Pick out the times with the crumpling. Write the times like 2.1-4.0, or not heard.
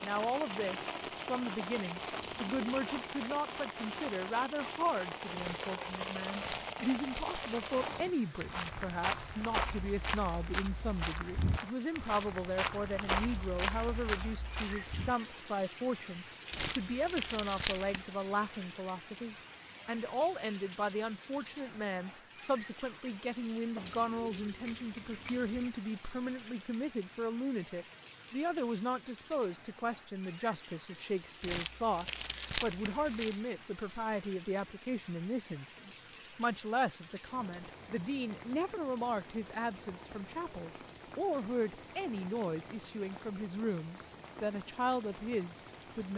5.3-7.8, 16.5-18.1, 31.4-33.4.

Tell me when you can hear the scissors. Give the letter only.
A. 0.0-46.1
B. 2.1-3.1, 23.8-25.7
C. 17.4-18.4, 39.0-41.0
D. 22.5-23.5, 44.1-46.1
B.